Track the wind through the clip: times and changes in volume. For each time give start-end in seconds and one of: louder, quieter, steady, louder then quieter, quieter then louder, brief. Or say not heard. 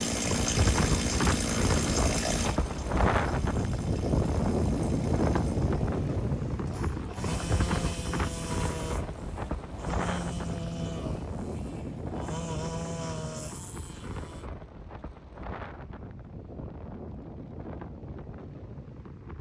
0.0-19.3 quieter.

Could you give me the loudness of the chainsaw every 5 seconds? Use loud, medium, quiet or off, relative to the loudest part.
loud, medium, medium, off.